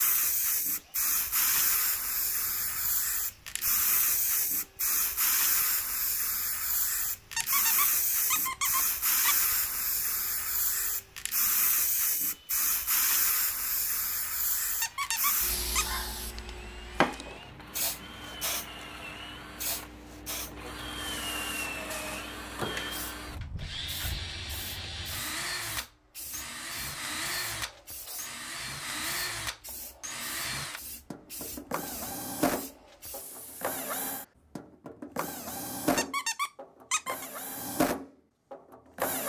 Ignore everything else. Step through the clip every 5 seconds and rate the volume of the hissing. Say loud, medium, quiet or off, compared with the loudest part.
loud, loud, loud, loud, quiet, quiet, quiet, off.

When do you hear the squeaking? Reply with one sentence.
You can hear the squeaking from 7.3 to 9.3 s, from 14.8 to 16.0 s and from 36.0 to 37.3 s.